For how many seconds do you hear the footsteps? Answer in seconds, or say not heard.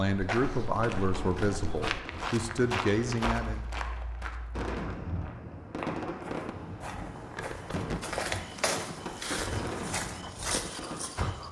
11 s.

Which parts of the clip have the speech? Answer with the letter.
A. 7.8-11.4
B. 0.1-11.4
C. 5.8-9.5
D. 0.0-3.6
D.